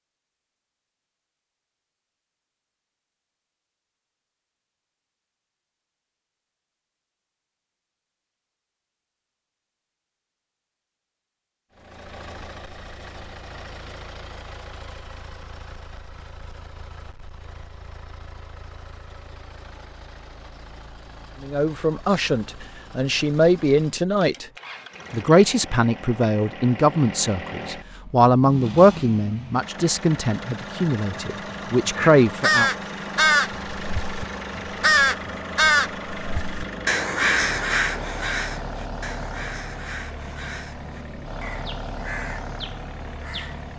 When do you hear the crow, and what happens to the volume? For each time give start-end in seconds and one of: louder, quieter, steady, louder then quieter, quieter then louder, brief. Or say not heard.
31.9-43.7 quieter.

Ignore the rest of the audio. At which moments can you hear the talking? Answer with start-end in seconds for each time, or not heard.
21.4-24.4, 25.1-32.7.